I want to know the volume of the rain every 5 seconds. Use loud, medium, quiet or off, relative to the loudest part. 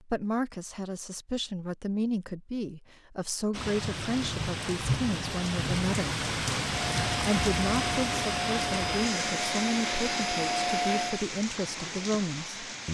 loud, loud, medium.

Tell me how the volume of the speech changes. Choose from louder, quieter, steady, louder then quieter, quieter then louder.
steady.